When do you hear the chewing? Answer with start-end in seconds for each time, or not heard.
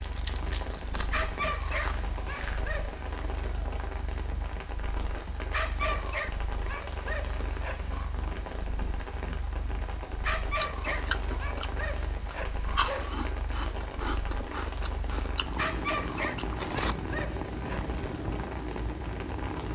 0.0-2.8, 10.4-16.9.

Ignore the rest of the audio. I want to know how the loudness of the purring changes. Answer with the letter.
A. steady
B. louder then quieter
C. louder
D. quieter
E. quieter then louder
C.